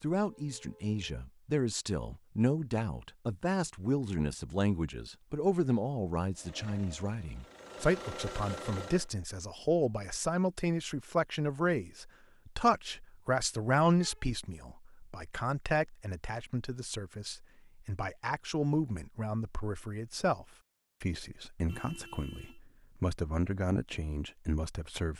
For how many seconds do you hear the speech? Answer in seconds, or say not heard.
25 s.